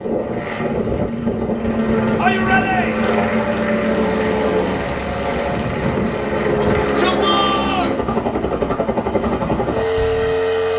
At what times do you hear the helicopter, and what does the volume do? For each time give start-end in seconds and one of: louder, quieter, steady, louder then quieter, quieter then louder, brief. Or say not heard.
0.0-10.7 steady.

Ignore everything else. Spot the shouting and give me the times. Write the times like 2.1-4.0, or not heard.
2.1-3.1, 6.6-8.0.